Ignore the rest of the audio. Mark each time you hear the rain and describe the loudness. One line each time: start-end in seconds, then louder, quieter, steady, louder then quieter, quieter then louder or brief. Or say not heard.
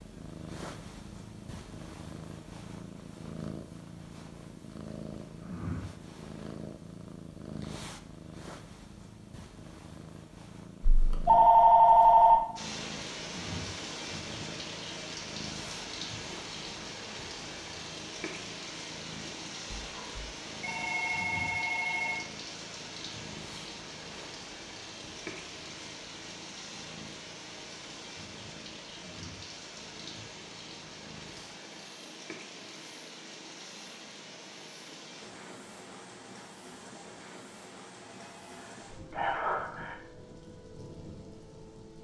12.6-41.9 quieter.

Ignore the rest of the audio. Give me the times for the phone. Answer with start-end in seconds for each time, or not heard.
10.8-12.4, 19.8-22.2, 38.5-40.0.